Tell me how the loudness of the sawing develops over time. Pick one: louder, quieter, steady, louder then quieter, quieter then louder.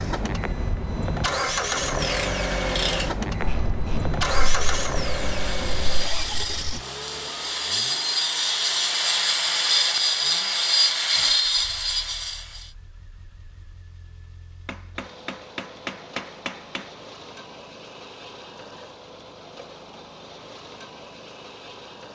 louder.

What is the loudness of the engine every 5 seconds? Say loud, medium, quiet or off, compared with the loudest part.
loud, medium, quiet, quiet, quiet.